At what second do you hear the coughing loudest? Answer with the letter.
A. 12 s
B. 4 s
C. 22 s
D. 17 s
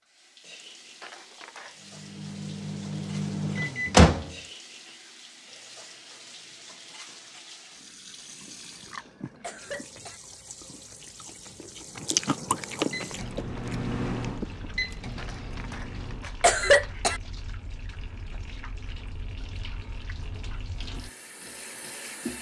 D.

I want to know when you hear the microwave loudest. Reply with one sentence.
The loudest moment of the microwave is at 4 seconds.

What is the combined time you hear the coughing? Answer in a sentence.
You can hear the coughing for 5 seconds altogether.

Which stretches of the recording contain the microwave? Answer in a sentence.
You can hear the microwave from 1.8 to 4.3 s and from 12.9 to 16.9 s.